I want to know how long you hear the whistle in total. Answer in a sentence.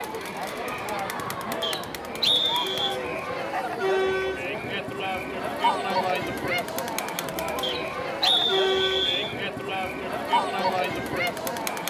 The whistle can be heard for 3 seconds in total.